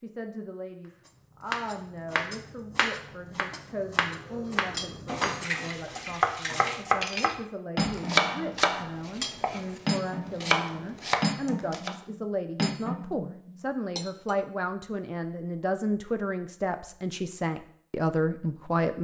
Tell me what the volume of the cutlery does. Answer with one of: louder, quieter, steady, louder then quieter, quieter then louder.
steady.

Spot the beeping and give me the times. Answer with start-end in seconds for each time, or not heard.
not heard.